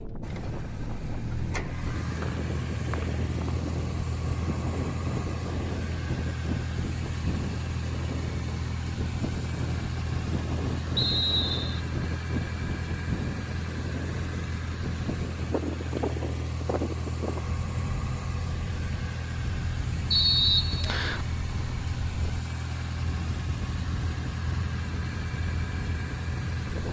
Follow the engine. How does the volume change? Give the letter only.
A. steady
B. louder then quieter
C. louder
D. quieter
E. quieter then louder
A.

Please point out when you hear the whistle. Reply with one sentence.
The whistle can be heard from 2.2 to 3.7 s, from 10.9 to 11.8 s and from 20.1 to 21.2 s.